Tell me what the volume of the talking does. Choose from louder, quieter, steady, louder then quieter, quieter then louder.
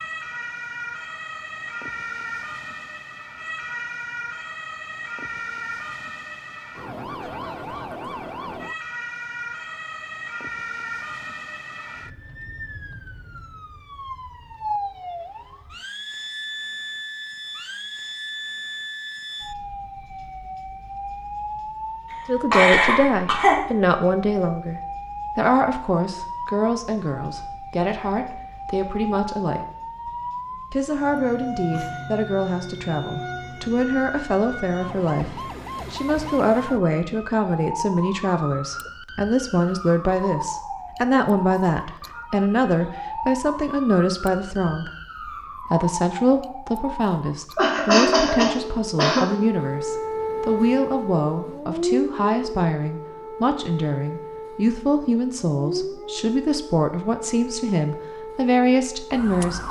steady.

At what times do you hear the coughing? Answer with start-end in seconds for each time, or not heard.
22.5-23.6, 47.5-49.3.